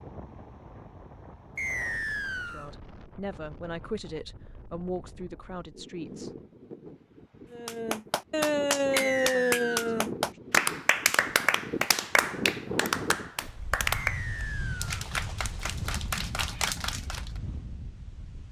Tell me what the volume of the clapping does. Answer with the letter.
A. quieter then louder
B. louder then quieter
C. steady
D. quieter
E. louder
D.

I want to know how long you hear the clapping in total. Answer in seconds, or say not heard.
10 s.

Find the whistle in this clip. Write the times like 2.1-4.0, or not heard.
1.6-2.7, 8.9-10.1, 14.0-15.0.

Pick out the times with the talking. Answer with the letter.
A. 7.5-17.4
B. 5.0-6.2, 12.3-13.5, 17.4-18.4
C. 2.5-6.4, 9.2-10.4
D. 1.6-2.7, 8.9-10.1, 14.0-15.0
C.